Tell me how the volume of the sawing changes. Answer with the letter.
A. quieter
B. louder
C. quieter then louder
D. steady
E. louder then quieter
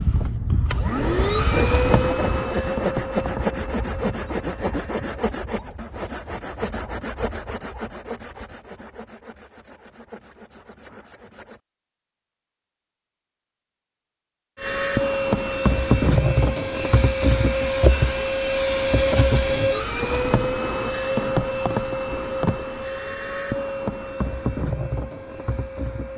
A.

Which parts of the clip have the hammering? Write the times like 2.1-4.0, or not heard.
not heard.